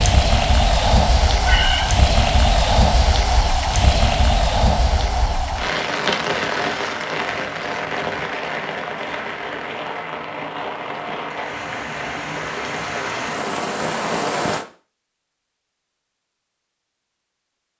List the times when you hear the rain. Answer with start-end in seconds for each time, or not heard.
0.0-14.7.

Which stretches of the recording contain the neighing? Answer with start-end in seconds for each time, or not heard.
1.3-1.9.